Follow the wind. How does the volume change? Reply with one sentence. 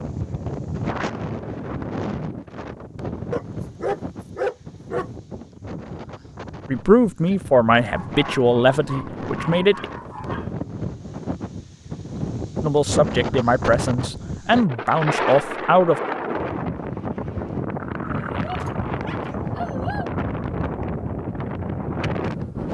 The loudness of the wind goes down, then up.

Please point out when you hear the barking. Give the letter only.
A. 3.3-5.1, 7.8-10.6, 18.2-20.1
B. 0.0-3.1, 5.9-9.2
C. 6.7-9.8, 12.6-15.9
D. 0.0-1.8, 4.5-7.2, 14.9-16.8
A.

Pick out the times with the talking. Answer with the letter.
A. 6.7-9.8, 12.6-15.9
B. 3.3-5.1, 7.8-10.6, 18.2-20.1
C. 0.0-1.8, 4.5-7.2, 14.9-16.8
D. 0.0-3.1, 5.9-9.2
A.